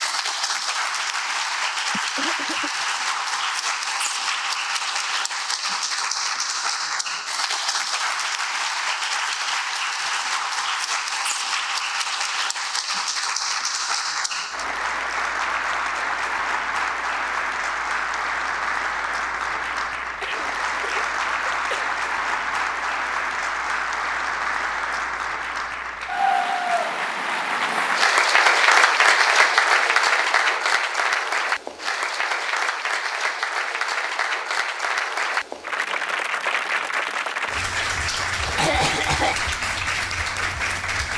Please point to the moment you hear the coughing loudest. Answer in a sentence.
The volume of the coughing peaks at 39 seconds.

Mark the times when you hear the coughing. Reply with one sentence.
The coughing can be heard from 1.9 to 2.7 s, from 20.2 to 21.9 s and from 38.5 to 39.4 s.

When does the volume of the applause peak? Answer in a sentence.
The loudest moment of the applause is at 29 seconds.